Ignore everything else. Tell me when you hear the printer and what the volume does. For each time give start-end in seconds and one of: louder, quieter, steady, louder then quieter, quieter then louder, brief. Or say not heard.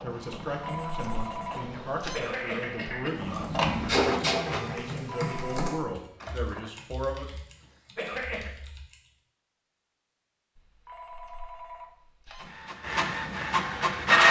0.0-6.7 louder then quieter
12.3-14.2 brief.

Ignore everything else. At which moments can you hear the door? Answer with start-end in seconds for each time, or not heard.
not heard.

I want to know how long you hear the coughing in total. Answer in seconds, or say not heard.
2 s.